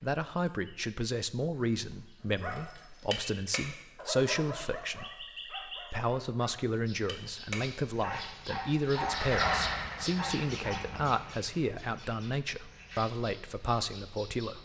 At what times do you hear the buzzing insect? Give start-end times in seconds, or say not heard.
not heard.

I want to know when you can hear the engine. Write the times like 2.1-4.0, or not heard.
8.9-11.2.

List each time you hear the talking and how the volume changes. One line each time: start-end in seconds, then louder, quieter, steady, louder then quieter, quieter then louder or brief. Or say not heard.
0.0-14.5 steady.